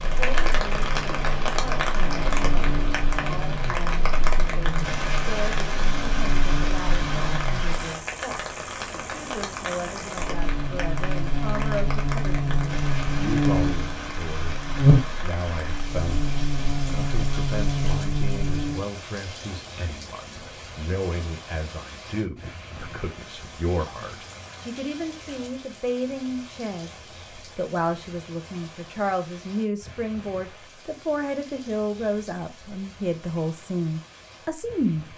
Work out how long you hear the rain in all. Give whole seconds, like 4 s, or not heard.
35 s.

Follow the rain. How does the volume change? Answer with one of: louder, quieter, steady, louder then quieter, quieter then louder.
quieter.